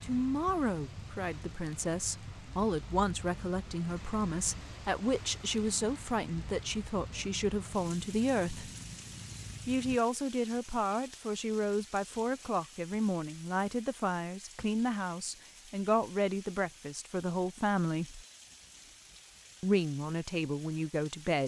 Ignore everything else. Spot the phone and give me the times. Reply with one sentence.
The phone can't be heard in this clip.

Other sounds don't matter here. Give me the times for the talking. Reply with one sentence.
You can hear the talking from 0.0 to 8.7 s, from 9.7 to 18.2 s and from 19.6 to 21.4 s.